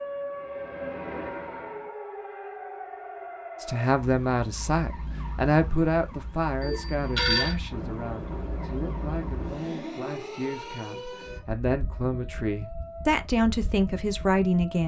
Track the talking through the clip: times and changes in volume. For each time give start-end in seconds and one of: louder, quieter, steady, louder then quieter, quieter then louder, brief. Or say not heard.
3.6-14.8 quieter then louder.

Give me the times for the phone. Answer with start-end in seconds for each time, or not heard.
6.6-7.5.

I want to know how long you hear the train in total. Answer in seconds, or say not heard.
4 s.